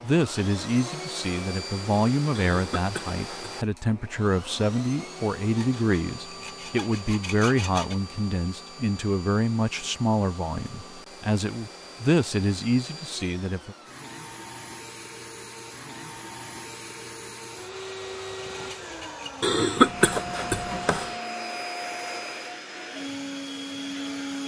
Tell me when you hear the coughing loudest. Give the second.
20 s.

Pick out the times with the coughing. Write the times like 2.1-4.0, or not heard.
2.4-3.6, 19.4-21.1.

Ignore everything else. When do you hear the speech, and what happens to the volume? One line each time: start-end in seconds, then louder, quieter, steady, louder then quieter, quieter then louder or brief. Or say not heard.
0.0-13.8 steady.